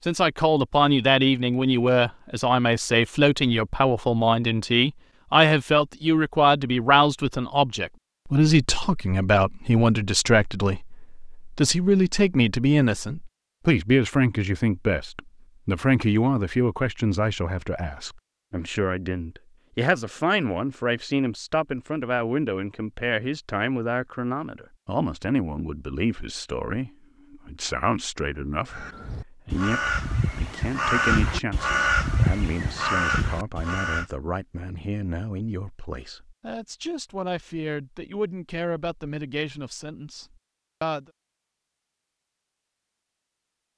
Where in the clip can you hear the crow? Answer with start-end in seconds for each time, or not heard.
28.6-34.1.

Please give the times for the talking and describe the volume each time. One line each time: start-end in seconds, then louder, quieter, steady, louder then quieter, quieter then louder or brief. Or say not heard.
0.1-41.0 quieter.